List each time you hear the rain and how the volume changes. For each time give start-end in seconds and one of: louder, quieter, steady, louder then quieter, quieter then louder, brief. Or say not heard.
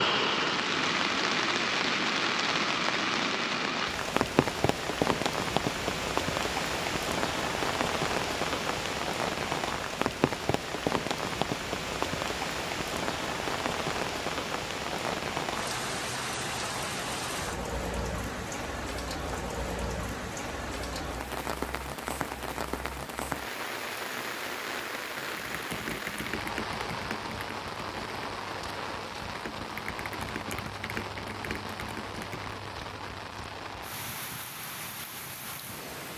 0.0-36.1 quieter.